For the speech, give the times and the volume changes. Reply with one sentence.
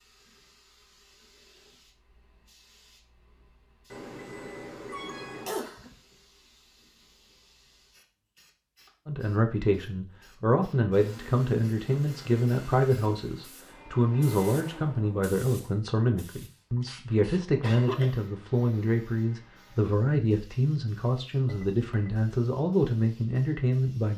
You can hear the speech from 9.1 to 24.1 s, at a steady volume.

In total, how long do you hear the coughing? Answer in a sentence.
You can hear the coughing for 2 seconds altogether.